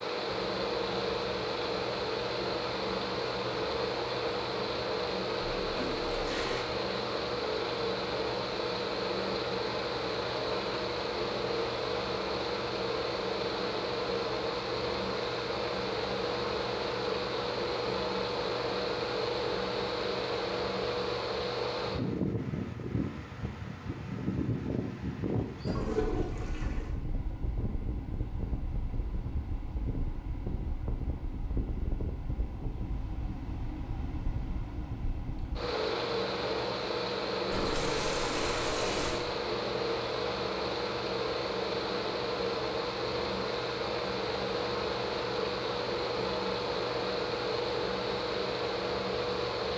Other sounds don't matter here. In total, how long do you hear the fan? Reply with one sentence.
The fan can be heard for 50 seconds in total.